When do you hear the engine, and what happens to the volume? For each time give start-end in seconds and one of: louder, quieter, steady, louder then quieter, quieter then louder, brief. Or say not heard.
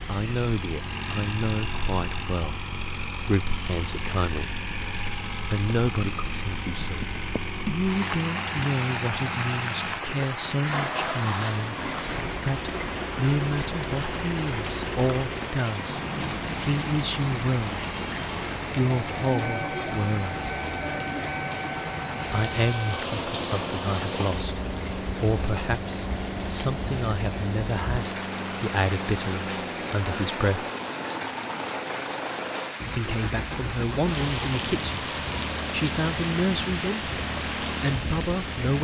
0.0-38.7 steady.